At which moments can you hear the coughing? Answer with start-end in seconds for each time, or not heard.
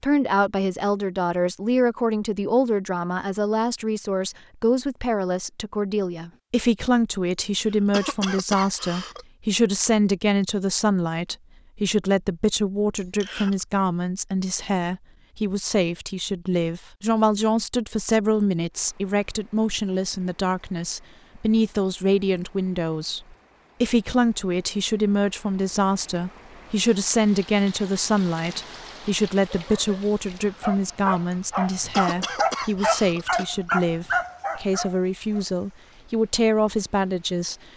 7.3-9.2, 12.9-13.7, 31.3-33.5.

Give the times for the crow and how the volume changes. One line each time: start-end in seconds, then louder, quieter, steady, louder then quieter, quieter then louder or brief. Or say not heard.
not heard.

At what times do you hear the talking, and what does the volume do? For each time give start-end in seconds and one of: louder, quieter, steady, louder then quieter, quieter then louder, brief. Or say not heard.
0.0-37.5 steady.